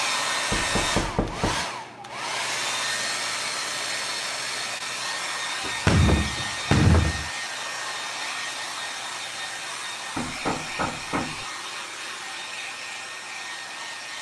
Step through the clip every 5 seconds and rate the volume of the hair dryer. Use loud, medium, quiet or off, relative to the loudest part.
loud, loud, medium.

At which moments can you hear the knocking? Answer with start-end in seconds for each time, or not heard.
0.5-1.6, 5.7-7.3, 10.2-11.4.